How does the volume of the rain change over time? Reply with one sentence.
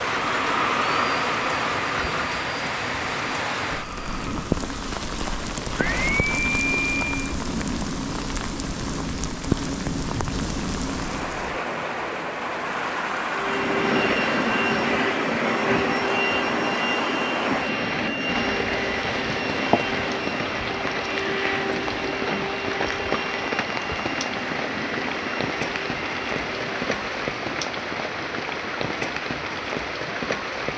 The loudness of the rain stays about the same.